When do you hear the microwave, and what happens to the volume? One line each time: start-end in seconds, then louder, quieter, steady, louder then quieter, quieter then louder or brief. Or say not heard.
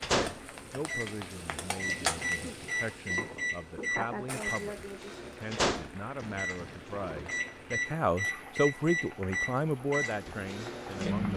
0.0-11.3 steady.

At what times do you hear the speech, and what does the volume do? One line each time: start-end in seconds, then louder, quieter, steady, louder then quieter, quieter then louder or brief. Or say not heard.
0.0-11.3 louder.